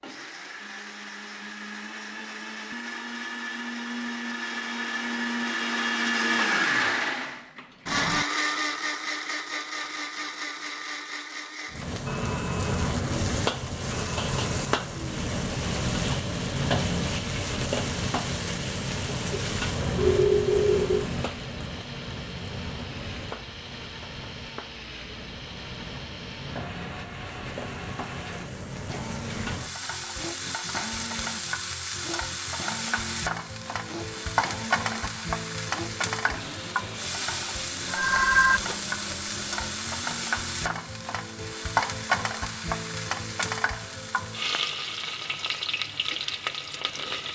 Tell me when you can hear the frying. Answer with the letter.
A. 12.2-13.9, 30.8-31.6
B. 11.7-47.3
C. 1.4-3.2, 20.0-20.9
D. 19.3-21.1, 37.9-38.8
B.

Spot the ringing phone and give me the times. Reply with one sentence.
The ringing phone can be heard from 19.3 to 21.1 s and from 37.9 to 38.8 s.